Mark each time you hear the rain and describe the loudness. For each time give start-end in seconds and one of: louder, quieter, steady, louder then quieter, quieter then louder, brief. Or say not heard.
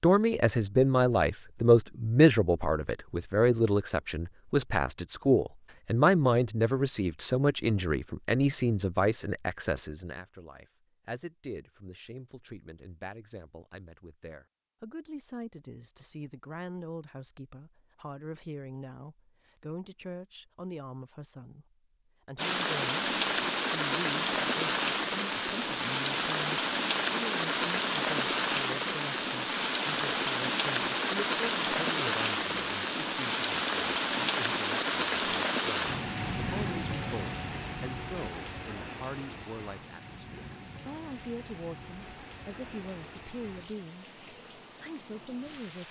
22.4-45.8 quieter.